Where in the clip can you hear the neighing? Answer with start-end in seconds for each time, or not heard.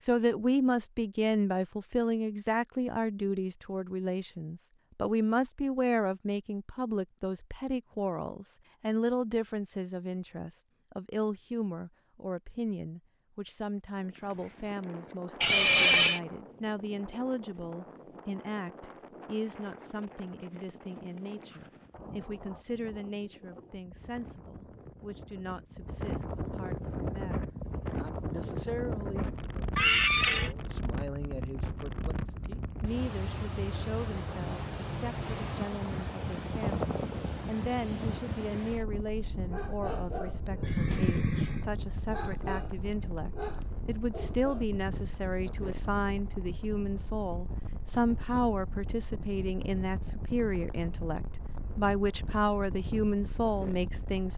15.4-16.2, 29.8-30.5, 40.6-41.6.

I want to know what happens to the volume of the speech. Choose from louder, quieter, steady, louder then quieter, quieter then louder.
quieter then louder.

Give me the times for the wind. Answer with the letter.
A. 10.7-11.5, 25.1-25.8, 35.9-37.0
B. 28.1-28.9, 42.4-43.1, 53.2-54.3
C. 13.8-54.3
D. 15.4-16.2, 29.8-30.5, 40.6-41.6
C.